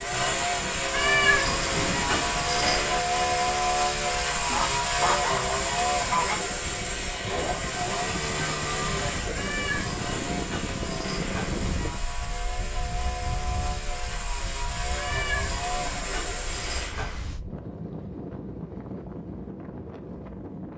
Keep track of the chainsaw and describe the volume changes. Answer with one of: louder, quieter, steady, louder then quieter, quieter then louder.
quieter.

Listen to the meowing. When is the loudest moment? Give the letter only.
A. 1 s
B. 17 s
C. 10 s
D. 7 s
A.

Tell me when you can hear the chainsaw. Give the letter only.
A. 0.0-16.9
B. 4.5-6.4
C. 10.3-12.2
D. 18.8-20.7
A.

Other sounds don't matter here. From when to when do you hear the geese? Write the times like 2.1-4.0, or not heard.
4.5-6.4.